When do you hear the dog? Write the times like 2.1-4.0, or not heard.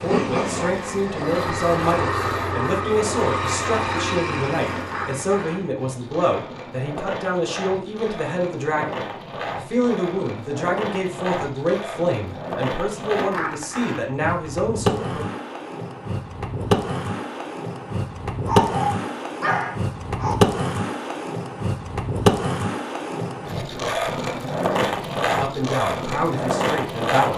18.4-20.4.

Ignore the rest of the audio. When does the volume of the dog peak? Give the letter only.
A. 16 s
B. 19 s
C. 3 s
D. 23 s
B.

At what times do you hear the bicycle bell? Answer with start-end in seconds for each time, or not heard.
not heard.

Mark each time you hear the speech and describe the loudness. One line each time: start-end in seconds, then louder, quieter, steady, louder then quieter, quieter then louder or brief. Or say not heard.
0.0-15.2 steady
25.4-27.3 brief.